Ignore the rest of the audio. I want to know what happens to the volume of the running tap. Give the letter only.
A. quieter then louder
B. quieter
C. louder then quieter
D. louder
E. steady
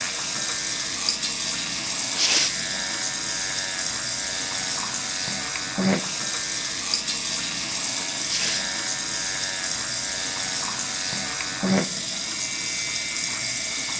E.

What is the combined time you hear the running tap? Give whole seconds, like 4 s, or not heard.
14 s.